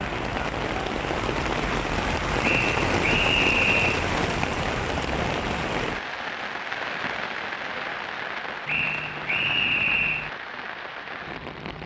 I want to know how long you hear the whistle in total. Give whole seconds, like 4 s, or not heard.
3 s.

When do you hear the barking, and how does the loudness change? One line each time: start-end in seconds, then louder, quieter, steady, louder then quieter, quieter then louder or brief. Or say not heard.
not heard.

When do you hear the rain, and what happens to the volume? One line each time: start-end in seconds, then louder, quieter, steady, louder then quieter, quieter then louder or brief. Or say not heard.
0.0-11.8 quieter.